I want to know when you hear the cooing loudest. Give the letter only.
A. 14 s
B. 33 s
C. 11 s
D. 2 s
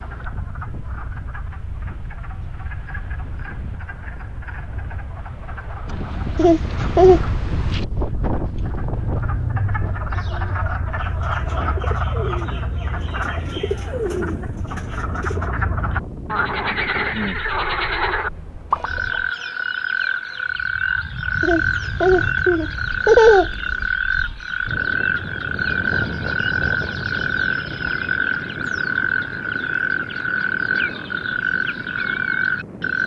A.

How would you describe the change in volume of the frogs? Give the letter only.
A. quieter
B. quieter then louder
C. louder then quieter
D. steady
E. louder
E.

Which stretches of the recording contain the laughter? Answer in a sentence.
You can hear the laughter from 6.3 to 7.2 s and from 21.4 to 23.9 s.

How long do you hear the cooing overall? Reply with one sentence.
The cooing can be heard for 6 seconds in total.